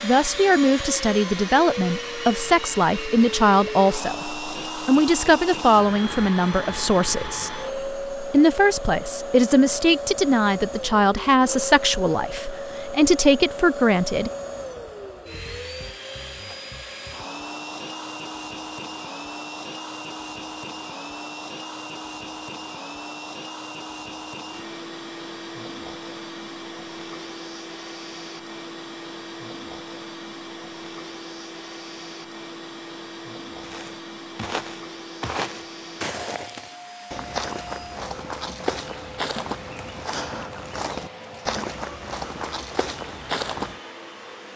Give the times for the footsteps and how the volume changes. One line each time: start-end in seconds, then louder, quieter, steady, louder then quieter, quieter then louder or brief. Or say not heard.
33.6-43.8 steady.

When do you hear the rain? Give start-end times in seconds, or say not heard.
not heard.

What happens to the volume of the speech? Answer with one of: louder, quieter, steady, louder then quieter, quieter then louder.
steady.